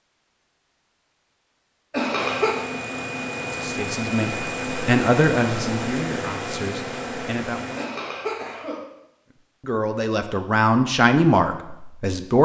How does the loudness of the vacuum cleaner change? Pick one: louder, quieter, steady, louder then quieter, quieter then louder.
steady.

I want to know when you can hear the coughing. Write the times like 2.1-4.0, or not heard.
1.9-2.6, 7.8-8.8.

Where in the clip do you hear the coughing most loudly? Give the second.
2 s.